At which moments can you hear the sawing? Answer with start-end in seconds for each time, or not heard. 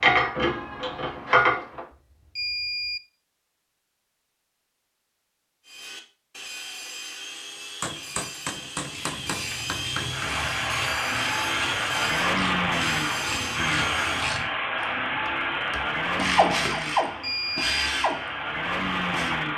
5.7-14.4.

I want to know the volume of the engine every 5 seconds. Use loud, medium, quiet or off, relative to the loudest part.
off, off, loud, loud.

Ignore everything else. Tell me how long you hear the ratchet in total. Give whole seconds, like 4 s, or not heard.
12 s.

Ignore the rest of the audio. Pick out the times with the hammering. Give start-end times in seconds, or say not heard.
7.8-10.3.